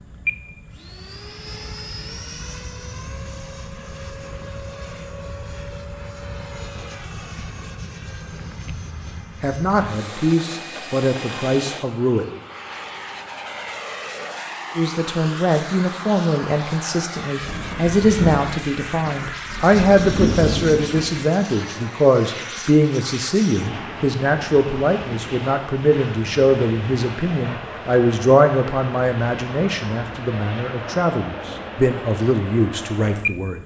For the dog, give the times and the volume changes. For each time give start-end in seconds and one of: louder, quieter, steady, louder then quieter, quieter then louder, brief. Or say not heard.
not heard.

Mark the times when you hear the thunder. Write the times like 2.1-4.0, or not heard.
17.4-21.2.